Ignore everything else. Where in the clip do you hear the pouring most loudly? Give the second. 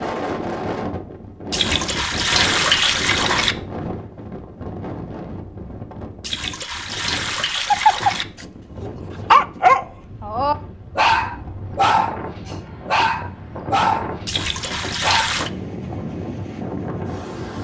3 s.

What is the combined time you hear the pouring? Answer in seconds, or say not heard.
5 s.